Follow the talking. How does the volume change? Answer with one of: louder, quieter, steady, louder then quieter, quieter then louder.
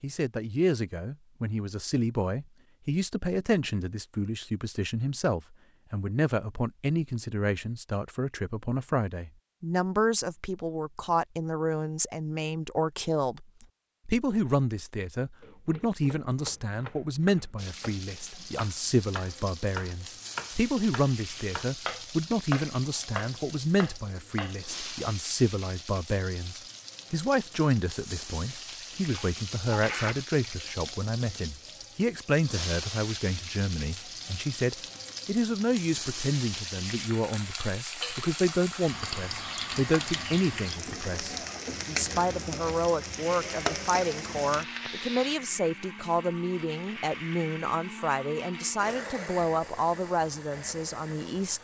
steady.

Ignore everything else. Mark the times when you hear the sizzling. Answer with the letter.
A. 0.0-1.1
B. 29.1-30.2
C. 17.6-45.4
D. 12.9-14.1
C.